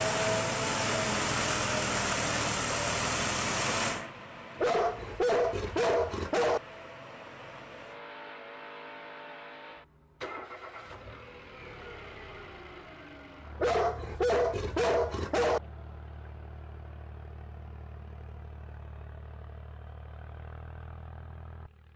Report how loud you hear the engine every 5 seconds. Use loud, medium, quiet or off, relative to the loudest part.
loud, quiet, quiet, quiet, quiet.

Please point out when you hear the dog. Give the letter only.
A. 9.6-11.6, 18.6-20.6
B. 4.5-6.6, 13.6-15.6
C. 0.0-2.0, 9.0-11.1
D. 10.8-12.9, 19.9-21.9
B.